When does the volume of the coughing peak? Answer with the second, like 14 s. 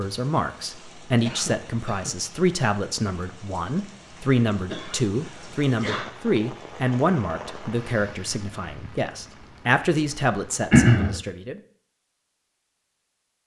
11 s.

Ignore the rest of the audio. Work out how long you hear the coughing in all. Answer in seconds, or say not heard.
3 s.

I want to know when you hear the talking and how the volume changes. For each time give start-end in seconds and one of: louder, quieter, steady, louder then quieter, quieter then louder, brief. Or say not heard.
0.0-11.6 steady.